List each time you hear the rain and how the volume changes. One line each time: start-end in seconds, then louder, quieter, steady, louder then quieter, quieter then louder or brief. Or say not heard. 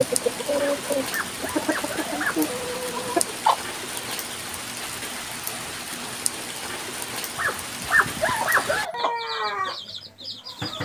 0.0-8.9 steady.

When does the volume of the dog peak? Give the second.
8 s.